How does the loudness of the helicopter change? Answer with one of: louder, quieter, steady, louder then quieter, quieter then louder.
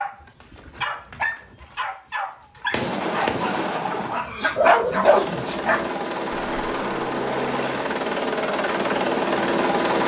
louder.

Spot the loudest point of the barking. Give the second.
5 s.